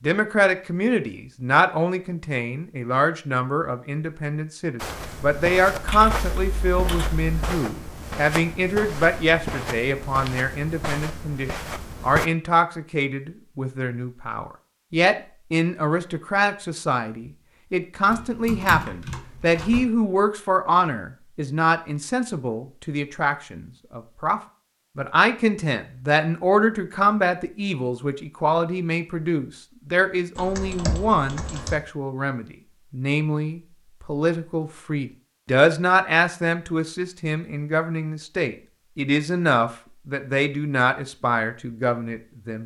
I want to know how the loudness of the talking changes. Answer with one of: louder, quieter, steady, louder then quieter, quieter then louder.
steady.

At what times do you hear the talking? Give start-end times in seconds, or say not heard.
0.0-42.6.